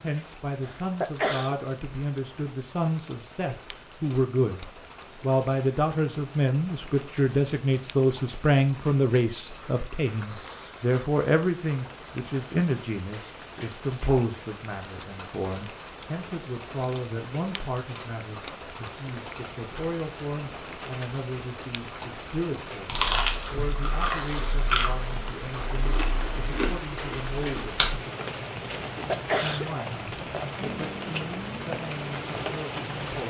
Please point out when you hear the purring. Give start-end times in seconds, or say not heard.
not heard.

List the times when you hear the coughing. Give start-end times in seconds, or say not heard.
0.6-1.6, 28.9-29.6.